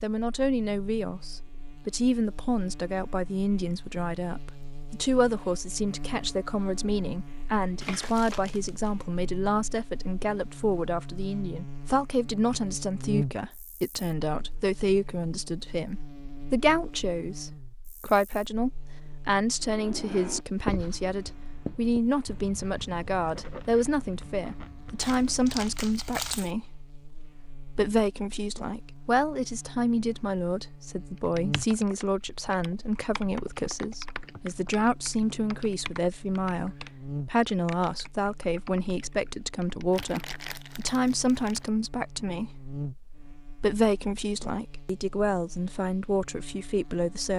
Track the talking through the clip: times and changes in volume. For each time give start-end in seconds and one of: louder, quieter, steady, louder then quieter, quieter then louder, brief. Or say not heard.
0.0-47.3 steady.